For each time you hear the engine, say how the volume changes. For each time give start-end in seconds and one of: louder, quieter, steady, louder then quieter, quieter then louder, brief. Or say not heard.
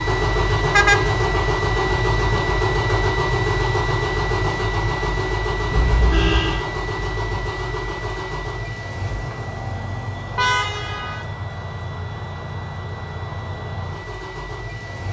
0.0-15.0 quieter.